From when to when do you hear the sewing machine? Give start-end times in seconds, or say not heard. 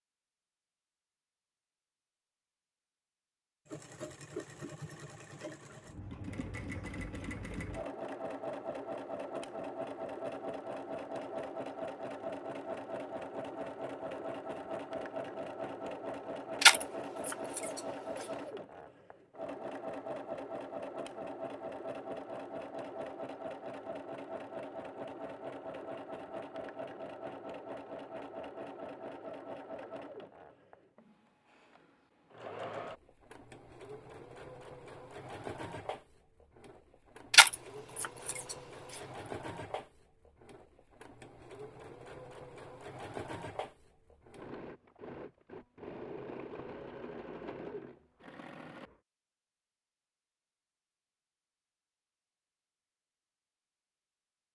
3.6-49.0.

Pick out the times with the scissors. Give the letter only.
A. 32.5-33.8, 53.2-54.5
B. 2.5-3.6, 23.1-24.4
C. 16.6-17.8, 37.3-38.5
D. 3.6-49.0
C.